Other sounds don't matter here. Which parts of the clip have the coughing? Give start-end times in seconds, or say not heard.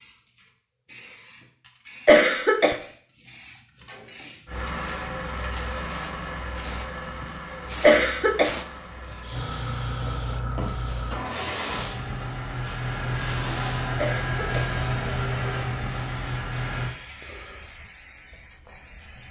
2.0-2.8, 7.8-8.6, 13.9-14.7.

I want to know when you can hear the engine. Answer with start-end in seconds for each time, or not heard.
4.5-16.9.